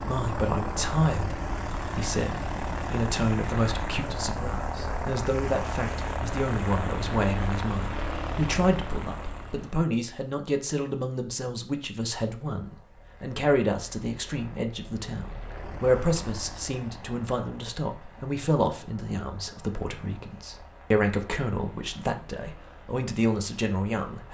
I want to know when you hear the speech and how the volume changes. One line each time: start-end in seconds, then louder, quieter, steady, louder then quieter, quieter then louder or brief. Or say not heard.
0.0-24.2 steady.